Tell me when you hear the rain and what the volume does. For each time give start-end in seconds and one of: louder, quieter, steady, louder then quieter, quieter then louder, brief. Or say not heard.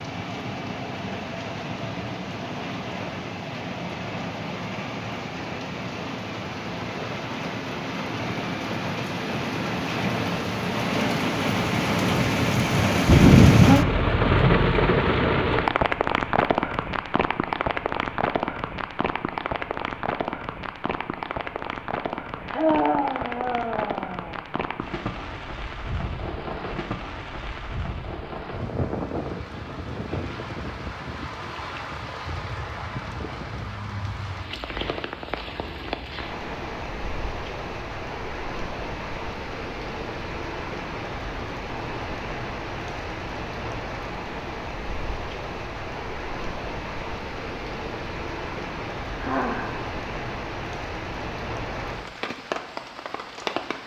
0.0-53.8 louder then quieter.